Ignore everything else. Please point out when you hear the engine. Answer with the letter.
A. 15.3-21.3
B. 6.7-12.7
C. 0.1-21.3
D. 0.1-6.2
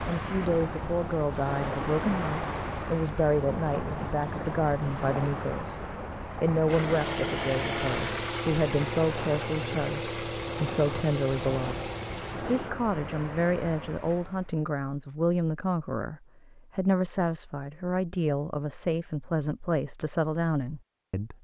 B.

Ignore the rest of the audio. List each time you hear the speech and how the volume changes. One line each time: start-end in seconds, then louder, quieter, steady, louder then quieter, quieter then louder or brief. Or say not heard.
0.1-21.3 steady.